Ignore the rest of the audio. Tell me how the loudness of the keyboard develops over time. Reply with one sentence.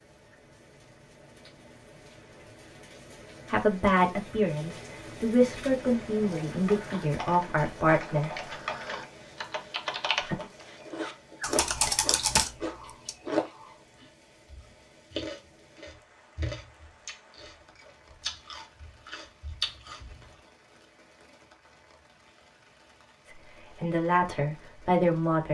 The volume of the keyboard goes up.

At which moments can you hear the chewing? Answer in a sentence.
You can hear the chewing from 10.3 to 20.2 s.